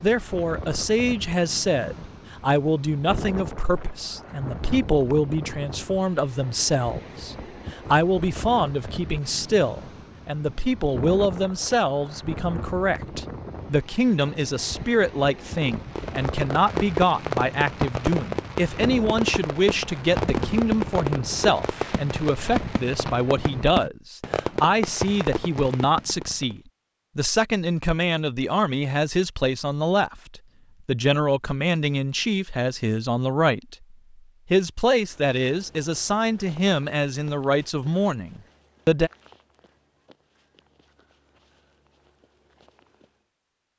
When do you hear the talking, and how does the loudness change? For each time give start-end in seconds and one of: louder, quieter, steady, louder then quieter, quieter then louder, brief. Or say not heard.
0.0-39.1 steady.